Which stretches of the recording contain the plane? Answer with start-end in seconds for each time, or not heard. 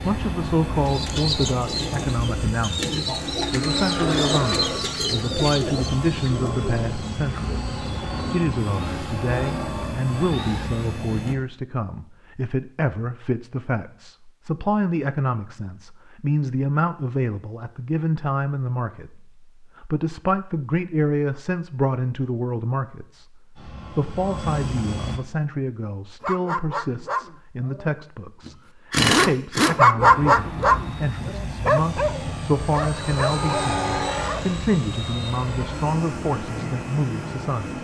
0.0-11.3, 23.6-25.2, 29.9-37.7.